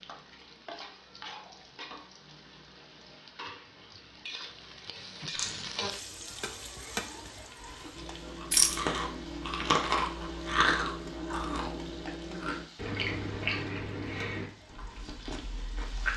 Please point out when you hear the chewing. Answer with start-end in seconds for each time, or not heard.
7.6-16.1.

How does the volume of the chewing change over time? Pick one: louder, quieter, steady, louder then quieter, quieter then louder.
louder then quieter.